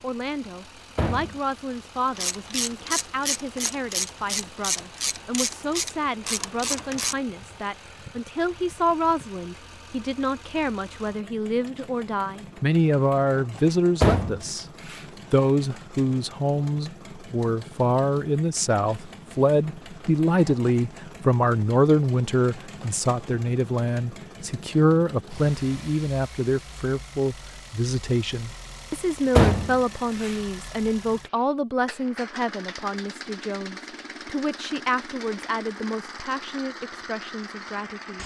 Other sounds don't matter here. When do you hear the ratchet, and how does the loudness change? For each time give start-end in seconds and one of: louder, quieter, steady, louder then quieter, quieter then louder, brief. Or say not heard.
2.1-7.2 steady.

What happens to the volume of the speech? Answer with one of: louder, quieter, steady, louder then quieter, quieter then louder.
louder then quieter.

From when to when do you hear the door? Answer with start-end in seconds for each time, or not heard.
0.9-1.4, 14.0-15.1, 29.4-30.4.